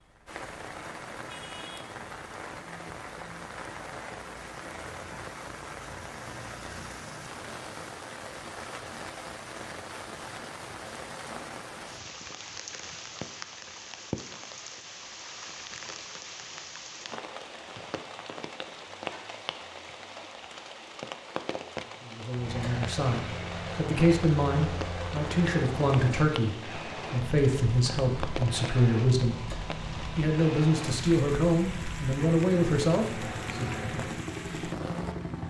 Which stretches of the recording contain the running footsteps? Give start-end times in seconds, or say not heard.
not heard.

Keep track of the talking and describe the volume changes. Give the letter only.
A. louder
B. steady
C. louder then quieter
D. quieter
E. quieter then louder
B.